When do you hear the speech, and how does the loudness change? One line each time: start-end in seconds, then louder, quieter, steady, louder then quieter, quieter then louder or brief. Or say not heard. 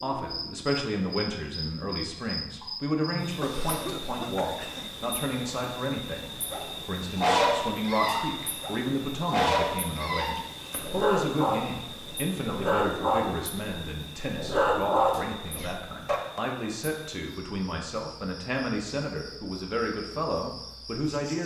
0.0-21.4 steady.